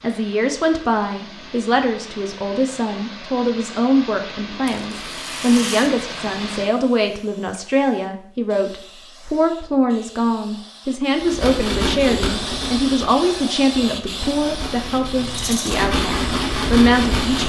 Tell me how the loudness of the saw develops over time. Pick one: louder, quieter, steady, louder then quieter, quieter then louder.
quieter then louder.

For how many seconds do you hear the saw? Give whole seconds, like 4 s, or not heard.
6 s.